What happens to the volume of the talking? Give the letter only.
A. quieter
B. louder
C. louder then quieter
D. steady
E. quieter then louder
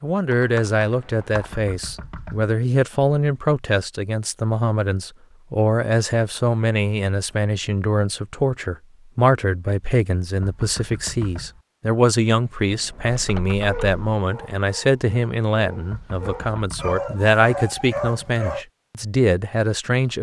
D.